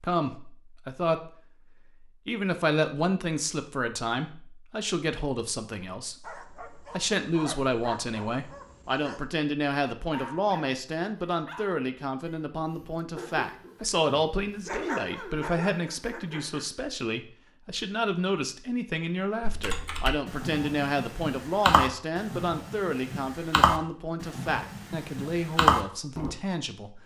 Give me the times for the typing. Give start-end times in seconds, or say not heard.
19.4-26.4.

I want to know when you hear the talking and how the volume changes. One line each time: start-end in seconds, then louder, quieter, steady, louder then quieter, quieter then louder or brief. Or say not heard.
0.0-1.3 brief
2.2-27.0 steady.